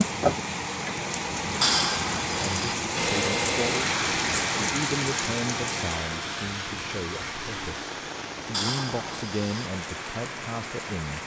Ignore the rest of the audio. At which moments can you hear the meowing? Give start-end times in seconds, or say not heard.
1.6-2.8, 8.5-9.7.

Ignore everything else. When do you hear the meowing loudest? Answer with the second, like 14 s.
2 s.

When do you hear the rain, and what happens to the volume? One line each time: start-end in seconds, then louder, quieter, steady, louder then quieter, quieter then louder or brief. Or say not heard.
0.0-11.2 quieter.